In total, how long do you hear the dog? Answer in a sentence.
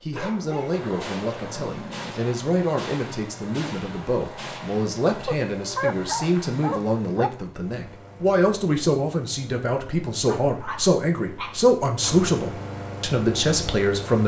You can hear the dog for 6 seconds altogether.